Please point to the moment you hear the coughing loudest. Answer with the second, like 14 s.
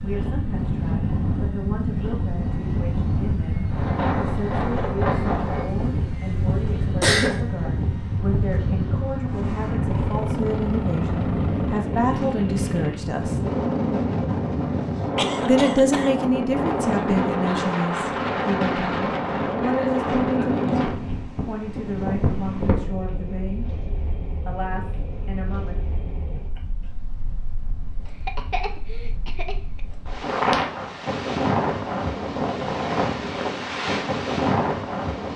7 s.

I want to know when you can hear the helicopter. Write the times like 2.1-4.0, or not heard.
0.0-13.2.